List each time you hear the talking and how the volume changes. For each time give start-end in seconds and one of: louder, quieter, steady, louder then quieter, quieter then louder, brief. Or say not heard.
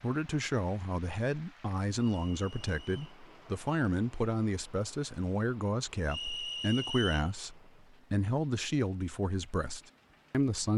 0.0-10.7 steady.